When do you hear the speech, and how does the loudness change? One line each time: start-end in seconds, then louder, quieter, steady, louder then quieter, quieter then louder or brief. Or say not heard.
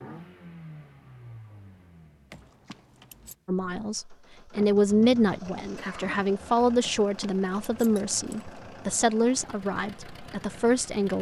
3.5-11.1 quieter.